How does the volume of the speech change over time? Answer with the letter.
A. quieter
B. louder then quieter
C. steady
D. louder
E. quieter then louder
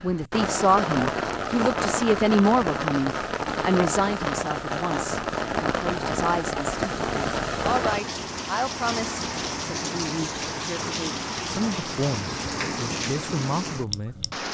A.